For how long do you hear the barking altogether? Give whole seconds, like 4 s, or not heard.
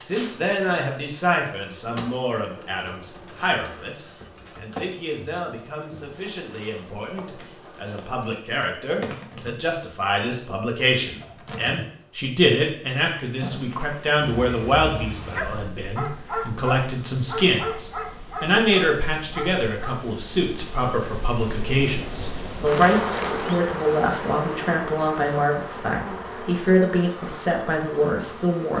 6 s.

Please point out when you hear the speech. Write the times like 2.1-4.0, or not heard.
0.0-28.7.